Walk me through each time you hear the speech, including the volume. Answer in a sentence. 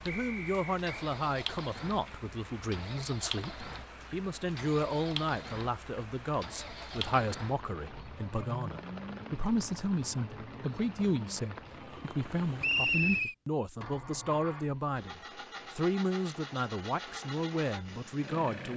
The speech can be heard from 0.0 to 18.7 s, at a steady volume.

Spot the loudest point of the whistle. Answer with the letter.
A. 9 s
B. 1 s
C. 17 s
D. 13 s
D.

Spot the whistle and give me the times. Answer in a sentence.
The whistle can be heard from 0.1 to 0.8 s and from 12.6 to 13.3 s.